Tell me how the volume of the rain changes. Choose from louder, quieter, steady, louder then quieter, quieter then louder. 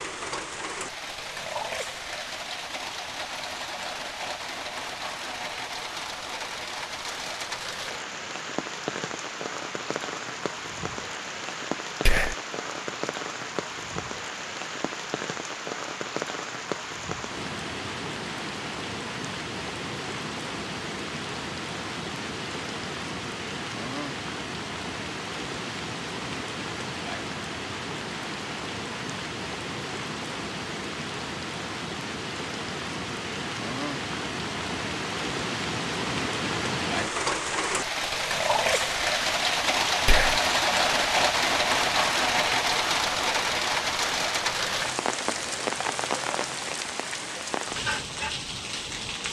louder.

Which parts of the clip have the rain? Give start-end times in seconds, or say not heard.
0.0-49.2.